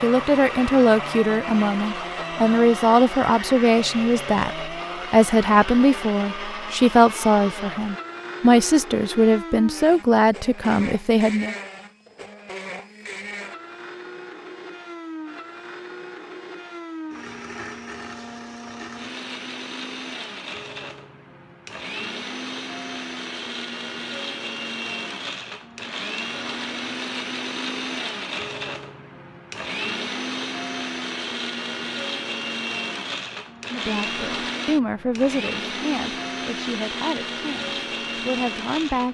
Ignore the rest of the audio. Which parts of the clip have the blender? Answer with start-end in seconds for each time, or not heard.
0.0-39.0.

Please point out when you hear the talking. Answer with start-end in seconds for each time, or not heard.
0.0-11.6, 33.7-39.0.